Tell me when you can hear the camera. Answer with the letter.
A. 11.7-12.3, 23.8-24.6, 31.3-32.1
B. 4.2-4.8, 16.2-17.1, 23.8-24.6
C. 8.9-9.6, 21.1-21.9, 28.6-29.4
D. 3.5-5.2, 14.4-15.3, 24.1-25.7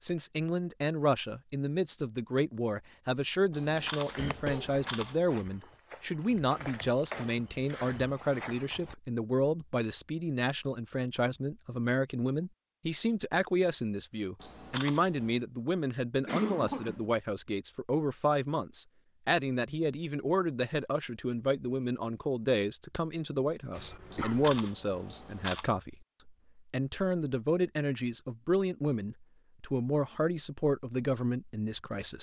D.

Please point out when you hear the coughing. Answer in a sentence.
The coughing can be heard from 4.2 to 4.8 s, from 16.2 to 17.1 s and from 23.8 to 24.6 s.